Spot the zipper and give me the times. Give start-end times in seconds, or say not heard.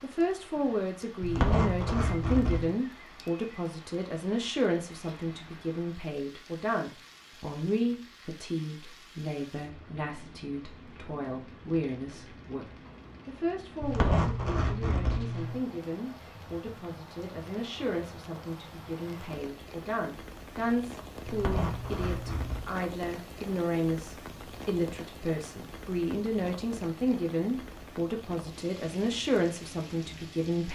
1.2-2.7, 13.8-15.6, 21.2-22.6.